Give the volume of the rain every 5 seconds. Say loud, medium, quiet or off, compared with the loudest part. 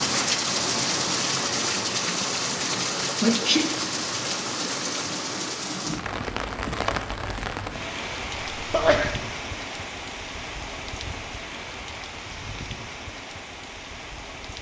loud, medium, medium.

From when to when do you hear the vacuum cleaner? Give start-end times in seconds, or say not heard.
not heard.